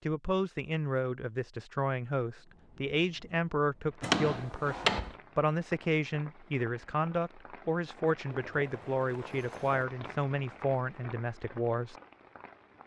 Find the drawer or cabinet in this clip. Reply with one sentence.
The drawer or cabinet can be heard from 4.0 to 5.2 s.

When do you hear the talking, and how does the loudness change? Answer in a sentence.
The talking can be heard from 0.0 to 11.9 s, at a steady volume.